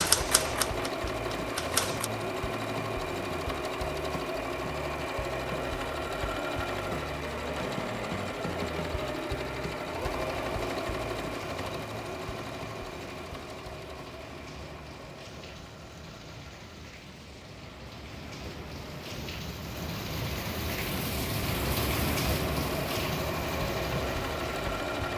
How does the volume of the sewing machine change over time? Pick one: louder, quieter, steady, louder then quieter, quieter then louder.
quieter then louder.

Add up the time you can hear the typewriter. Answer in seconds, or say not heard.
2 s.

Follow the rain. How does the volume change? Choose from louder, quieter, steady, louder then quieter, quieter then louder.
louder.